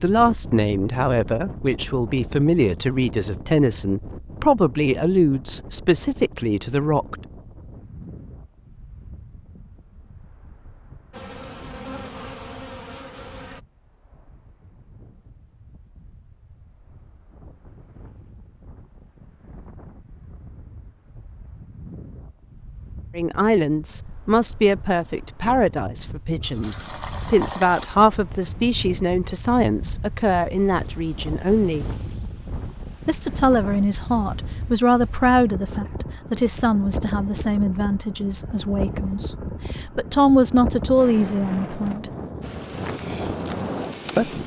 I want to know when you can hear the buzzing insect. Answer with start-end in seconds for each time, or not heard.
11.1-13.6, 42.4-44.4.